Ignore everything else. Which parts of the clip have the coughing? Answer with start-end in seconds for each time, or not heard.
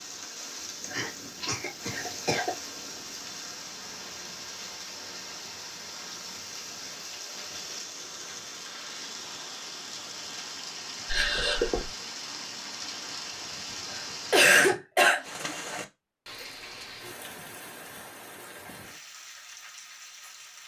0.8-2.5, 11.1-11.9, 13.9-15.3.